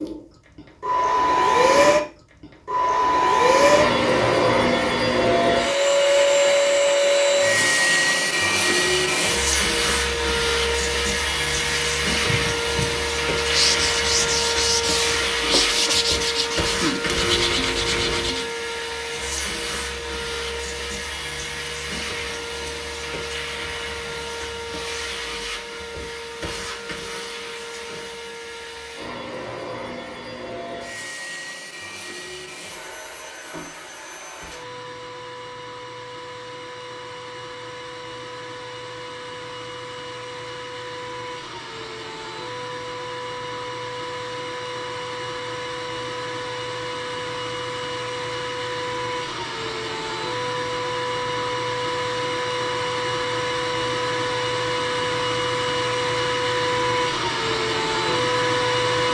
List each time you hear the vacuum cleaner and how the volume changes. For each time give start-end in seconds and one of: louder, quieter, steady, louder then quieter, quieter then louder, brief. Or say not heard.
0.0-59.1 quieter then louder.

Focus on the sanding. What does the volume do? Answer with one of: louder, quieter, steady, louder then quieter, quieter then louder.
steady.